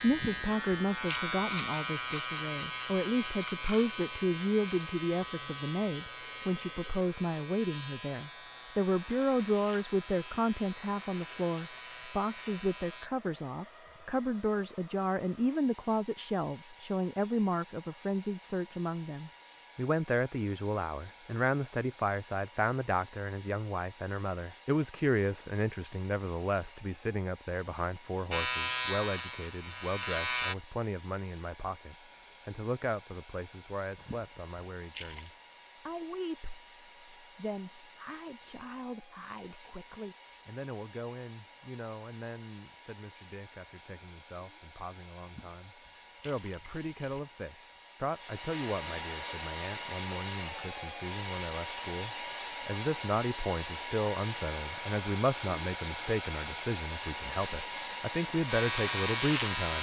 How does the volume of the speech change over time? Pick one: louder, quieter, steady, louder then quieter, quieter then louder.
quieter then louder.